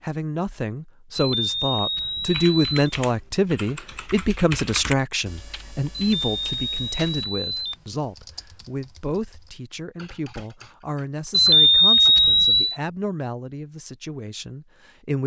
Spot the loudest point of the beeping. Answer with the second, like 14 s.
12 s.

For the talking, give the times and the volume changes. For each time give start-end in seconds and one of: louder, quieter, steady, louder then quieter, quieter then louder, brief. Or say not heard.
0.0-15.2 quieter.